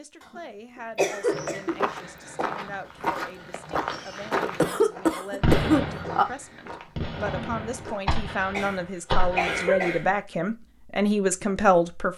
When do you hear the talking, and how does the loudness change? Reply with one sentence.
The talking can be heard from 0.0 to 12.1 s, getting louder.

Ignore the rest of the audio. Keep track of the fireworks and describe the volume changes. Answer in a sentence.
The volume of the fireworks goes up.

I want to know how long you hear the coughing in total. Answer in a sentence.
You can hear the coughing for 4 seconds altogether.